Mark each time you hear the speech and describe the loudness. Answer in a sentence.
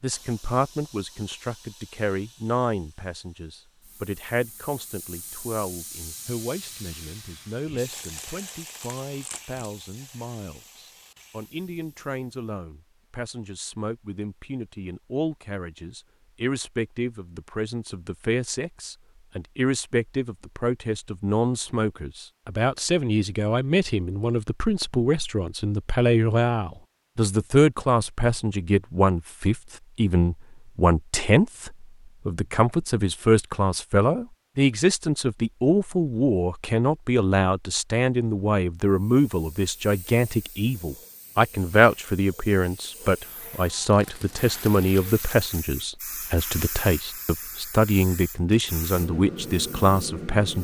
You can hear the speech from 0.0 to 50.5 s, getting louder.